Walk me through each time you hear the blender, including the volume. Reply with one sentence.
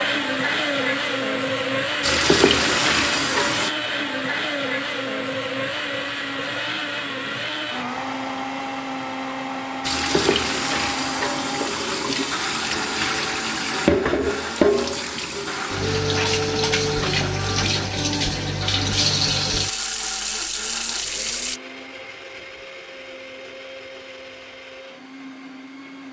You can hear the blender from 0.0 to 26.0 s, getting quieter.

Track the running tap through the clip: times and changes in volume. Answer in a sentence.
You can hear the running tap briefly from 2.0 to 3.7 s; and from 9.8 to 21.6 s, at a steady volume.